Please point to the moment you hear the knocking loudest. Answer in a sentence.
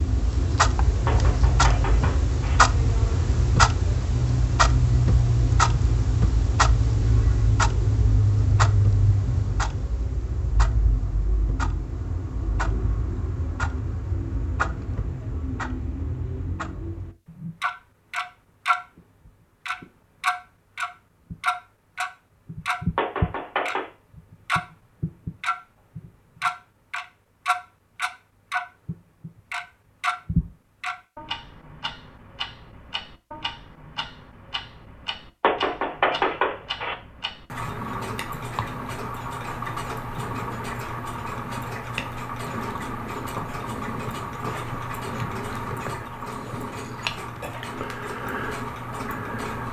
The loudest moment of the knocking is at 36 seconds.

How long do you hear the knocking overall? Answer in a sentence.
You can hear the knocking for 4 seconds altogether.